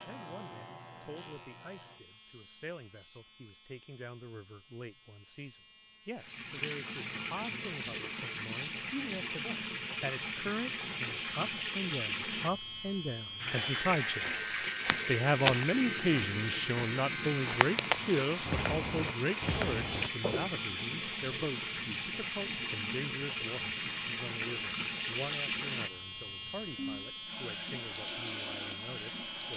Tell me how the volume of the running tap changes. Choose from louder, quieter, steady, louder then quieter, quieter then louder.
steady.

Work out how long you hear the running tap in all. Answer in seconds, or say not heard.
23 s.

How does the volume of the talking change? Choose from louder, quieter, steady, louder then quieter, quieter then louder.
louder then quieter.